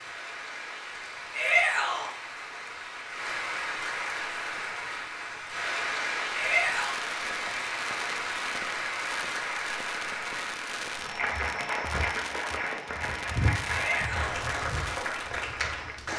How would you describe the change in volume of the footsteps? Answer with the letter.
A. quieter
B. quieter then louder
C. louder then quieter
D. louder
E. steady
C.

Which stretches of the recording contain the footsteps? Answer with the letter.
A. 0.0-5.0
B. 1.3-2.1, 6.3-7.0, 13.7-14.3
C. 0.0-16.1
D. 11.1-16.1
D.